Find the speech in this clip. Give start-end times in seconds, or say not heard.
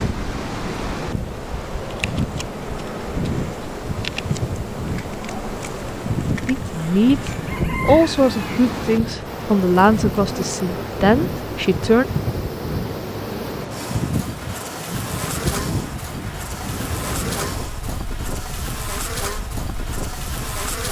6.5-12.1.